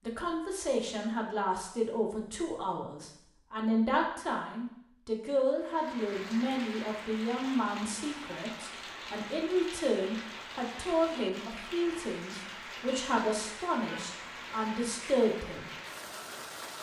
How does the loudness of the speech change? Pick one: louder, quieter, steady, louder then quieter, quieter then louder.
steady.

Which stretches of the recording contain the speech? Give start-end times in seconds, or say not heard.
0.0-15.7.